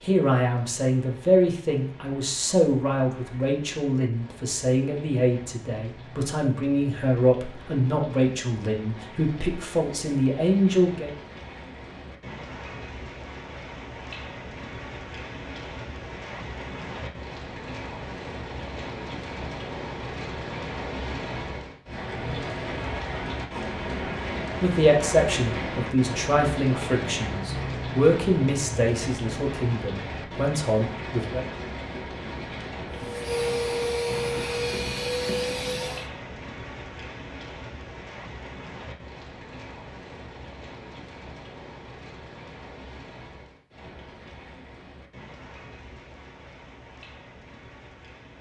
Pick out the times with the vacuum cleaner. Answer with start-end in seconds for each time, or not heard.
32.9-36.1.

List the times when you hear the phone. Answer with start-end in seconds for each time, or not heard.
not heard.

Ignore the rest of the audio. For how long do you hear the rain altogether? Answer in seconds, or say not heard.
48 s.